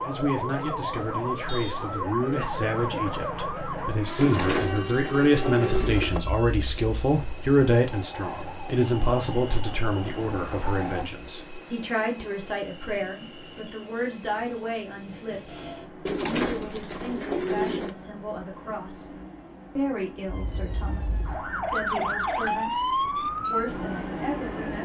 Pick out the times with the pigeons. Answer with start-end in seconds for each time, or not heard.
4.2-6.2, 16.1-17.9.